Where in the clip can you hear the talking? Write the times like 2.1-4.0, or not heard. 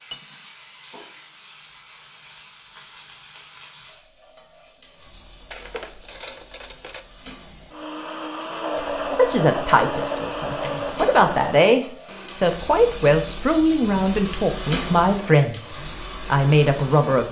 8.8-17.2.